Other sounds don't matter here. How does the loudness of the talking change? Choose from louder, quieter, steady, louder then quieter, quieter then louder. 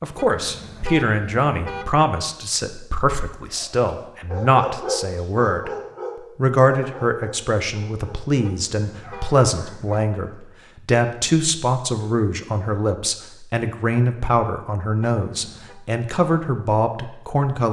steady.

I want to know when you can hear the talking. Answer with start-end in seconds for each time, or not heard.
0.0-5.7, 6.3-17.6.